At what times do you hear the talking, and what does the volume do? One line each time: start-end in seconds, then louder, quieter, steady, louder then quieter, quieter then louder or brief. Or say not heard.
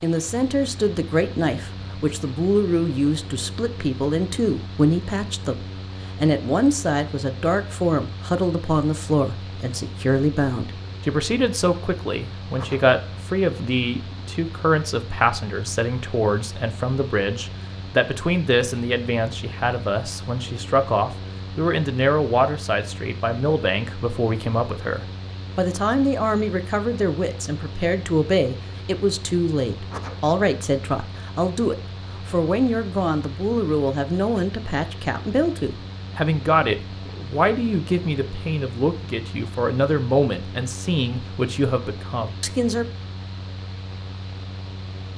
0.0-42.9 steady.